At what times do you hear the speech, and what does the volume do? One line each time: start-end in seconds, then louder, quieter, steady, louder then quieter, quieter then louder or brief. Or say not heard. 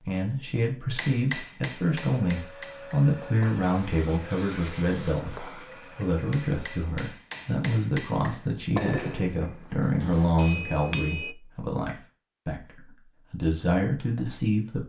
0.0-14.8 steady.